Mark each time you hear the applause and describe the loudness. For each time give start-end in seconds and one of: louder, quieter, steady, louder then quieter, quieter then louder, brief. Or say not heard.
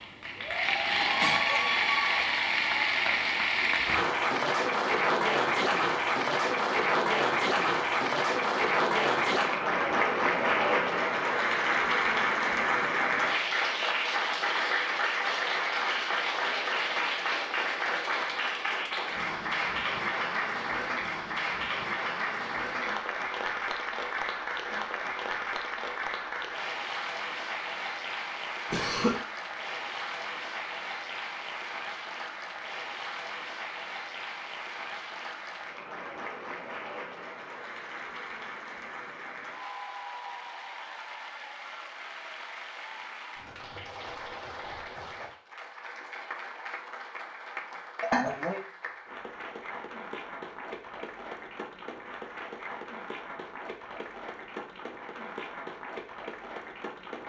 0.0-57.2 quieter.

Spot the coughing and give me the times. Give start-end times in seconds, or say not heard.
0.8-1.8, 28.7-29.1, 48.0-48.6.